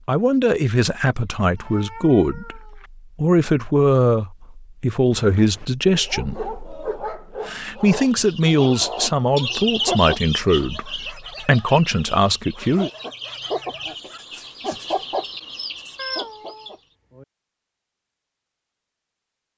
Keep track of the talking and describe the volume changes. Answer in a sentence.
The volume of the talking stays about the same.